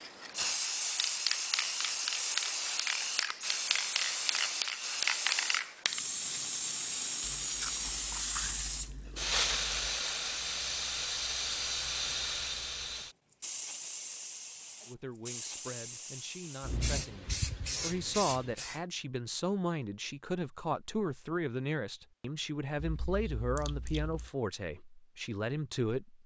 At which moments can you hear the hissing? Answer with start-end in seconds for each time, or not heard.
0.0-18.8.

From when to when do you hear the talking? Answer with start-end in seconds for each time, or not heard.
14.8-26.2.